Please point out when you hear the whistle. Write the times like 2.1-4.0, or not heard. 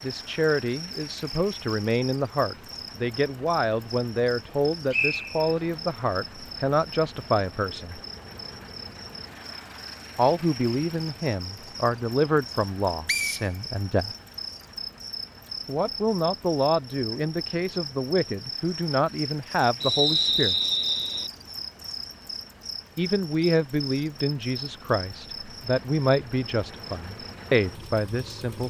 4.9-5.7, 13.1-14.2, 19.8-21.3.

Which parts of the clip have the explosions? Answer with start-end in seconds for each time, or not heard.
not heard.